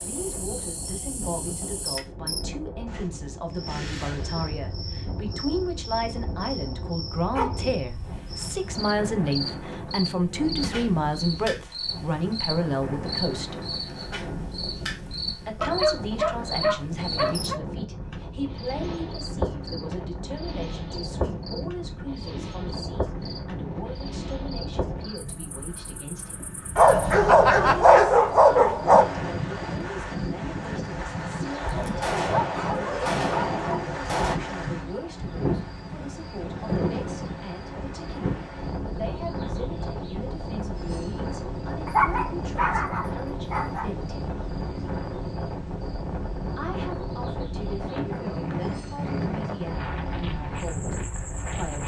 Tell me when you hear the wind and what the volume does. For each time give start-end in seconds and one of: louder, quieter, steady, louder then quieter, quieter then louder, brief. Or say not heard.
0.0-51.8 louder.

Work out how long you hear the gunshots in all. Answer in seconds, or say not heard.
3 s.